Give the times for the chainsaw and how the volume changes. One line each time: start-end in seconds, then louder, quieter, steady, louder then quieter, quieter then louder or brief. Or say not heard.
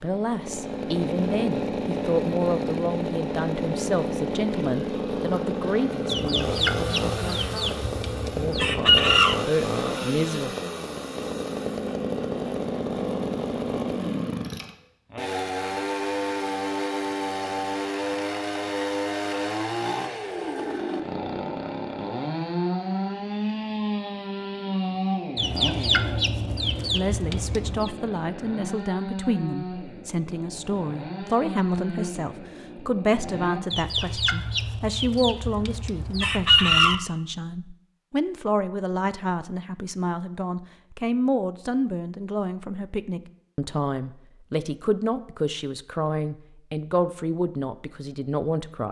0.0-33.6 quieter.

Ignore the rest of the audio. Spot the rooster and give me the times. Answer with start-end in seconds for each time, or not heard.
6.0-9.3, 25.4-27.9, 33.7-37.0.